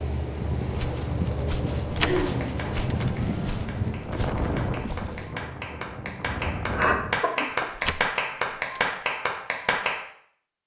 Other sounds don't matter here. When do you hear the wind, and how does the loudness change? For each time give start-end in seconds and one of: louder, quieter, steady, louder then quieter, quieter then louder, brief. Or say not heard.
0.0-7.2 quieter.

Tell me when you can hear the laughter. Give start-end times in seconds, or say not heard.
1.9-2.5, 6.8-7.7.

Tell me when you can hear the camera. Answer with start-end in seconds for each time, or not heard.
1.9-3.6, 7.5-9.1.